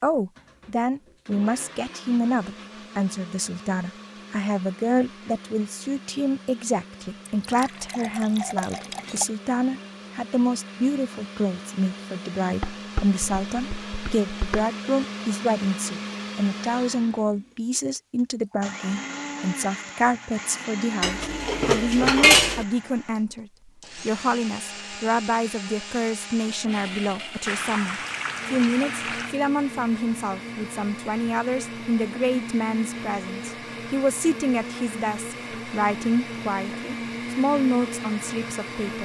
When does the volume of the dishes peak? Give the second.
22 s.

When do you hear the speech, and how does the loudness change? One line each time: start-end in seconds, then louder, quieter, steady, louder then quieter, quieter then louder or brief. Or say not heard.
0.0-39.0 steady.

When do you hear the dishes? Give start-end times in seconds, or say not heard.
12.6-14.7, 21.0-22.6.